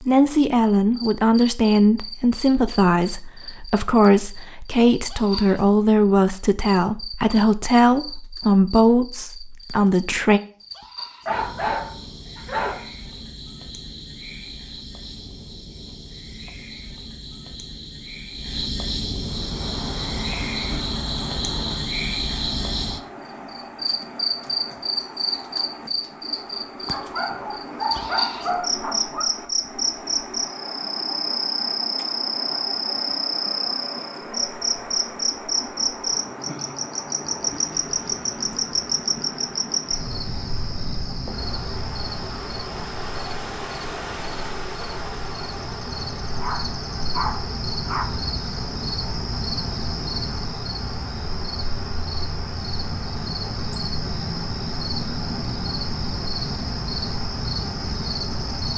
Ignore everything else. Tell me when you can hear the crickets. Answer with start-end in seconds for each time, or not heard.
0.0-58.7.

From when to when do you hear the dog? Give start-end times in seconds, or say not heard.
11.2-12.8, 26.9-29.2, 46.4-48.0.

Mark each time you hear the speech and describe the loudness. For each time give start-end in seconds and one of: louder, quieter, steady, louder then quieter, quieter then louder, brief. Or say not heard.
0.0-10.4 steady.